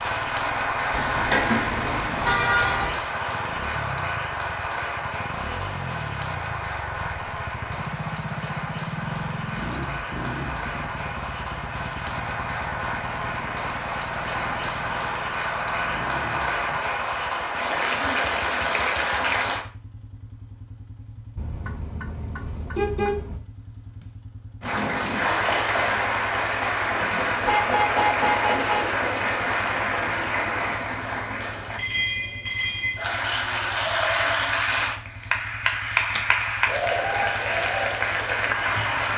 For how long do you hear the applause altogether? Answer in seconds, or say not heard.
34 s.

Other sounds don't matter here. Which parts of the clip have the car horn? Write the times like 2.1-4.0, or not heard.
0.9-3.0, 21.4-23.4, 27.4-28.9.